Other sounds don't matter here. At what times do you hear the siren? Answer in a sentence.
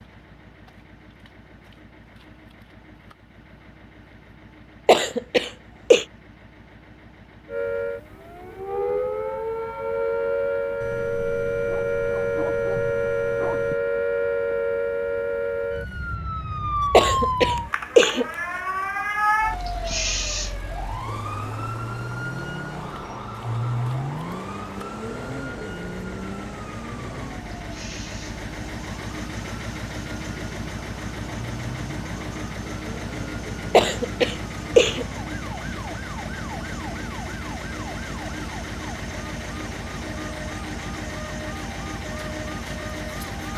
The siren can be heard from 7.5 to 43.5 s.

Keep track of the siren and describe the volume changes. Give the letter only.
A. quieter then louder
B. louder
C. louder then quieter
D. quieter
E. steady
D.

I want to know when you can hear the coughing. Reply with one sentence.
You can hear the coughing from 4.8 to 6.0 s, from 16.9 to 18.2 s and from 33.7 to 35.0 s.